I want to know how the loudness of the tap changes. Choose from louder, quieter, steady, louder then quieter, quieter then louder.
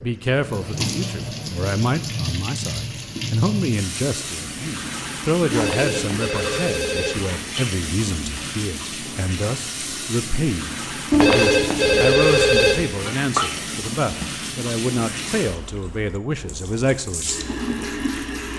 steady.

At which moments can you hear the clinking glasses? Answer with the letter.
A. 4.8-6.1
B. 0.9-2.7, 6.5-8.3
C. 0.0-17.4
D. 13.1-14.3
D.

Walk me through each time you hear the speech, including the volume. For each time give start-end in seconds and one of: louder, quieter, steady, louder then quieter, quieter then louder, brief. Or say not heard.
0.0-17.4 steady.